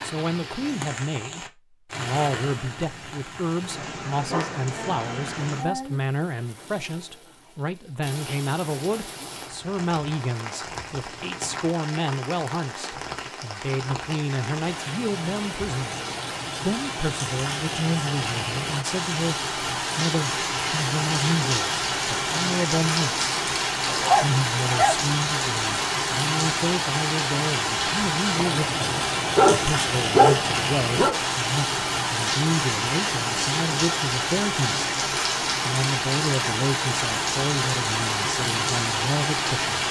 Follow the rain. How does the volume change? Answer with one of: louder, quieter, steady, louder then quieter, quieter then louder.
louder.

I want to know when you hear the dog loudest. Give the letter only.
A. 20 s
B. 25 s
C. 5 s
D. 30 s
D.